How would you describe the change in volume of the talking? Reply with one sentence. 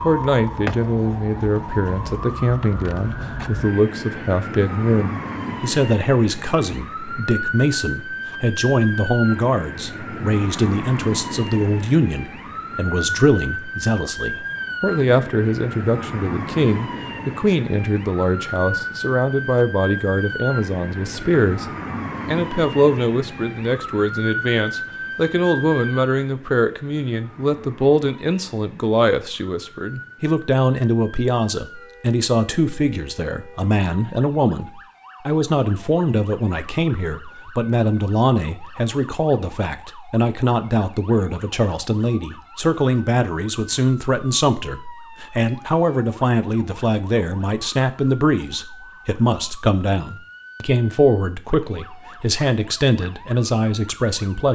The volume of the talking stays about the same.